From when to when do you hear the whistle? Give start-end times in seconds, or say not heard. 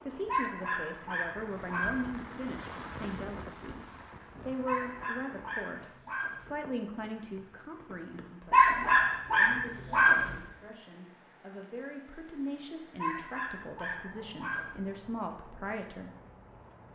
not heard.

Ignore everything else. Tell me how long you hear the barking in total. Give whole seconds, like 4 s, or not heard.
8 s.